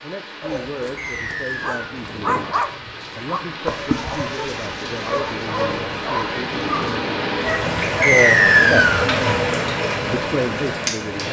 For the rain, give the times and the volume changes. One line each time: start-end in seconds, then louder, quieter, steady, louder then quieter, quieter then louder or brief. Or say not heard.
0.0-11.2 louder.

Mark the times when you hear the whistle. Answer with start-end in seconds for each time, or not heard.
0.9-1.8, 8.0-9.1.